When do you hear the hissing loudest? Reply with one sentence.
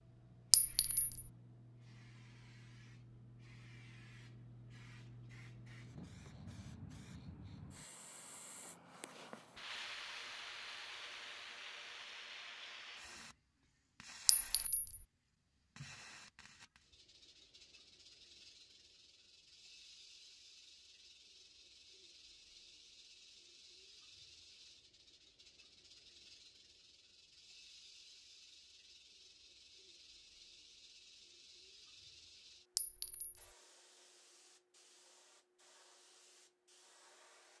The loudest moment of the hissing is at 10 seconds.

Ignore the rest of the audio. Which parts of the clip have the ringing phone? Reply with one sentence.
You can't hear the ringing phone here.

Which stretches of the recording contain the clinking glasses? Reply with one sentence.
You can hear the clinking glasses from 0.5 to 1.2 s, from 14.2 to 15.0 s and from 32.8 to 33.5 s.